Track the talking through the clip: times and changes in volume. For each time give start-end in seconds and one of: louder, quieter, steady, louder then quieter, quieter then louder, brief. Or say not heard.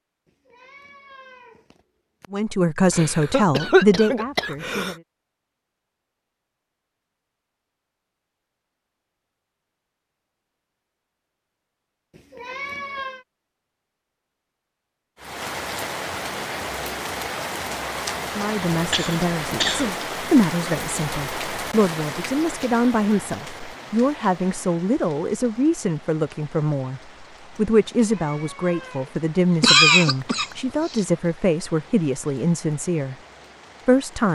2.3-5.0 brief
18.2-33.1 steady
33.9-34.3 brief.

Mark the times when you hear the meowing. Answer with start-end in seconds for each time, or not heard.
0.5-2.2, 12.1-13.2, 28.1-29.1.